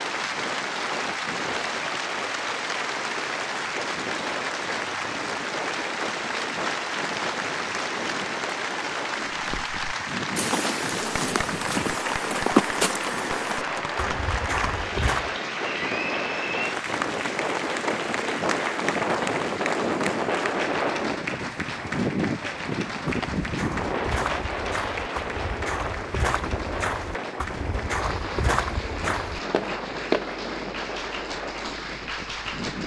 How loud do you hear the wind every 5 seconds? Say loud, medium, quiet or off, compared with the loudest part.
medium, medium, medium, loud, loud, medium, medium.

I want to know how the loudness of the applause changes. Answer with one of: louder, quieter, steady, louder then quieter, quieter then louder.
quieter.